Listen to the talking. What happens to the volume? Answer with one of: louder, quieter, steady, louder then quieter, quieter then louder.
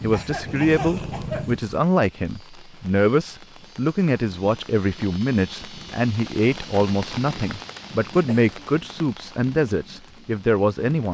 steady.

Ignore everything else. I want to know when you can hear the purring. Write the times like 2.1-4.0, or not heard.
0.0-1.8.